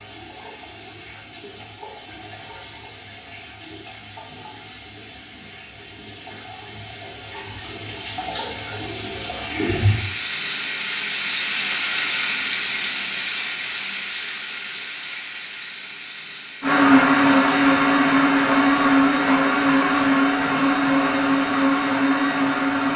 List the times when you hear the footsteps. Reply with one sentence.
The footsteps can't be heard in this clip.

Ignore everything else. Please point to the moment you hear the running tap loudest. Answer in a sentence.
The volume of the running tap peaks at 12 seconds.